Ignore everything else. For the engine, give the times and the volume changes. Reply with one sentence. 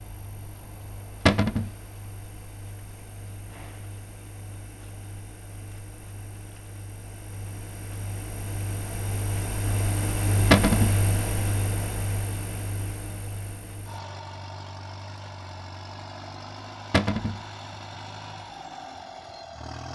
The engine can be heard from 0.0 to 19.9 s, getting louder then quieter.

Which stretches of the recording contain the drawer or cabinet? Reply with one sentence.
You can hear the drawer or cabinet from 1.2 to 1.7 s, from 10.5 to 10.9 s and from 16.9 to 17.4 s.